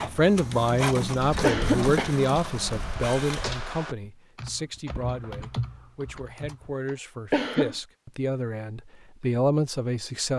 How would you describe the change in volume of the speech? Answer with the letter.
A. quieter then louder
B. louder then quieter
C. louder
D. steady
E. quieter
A.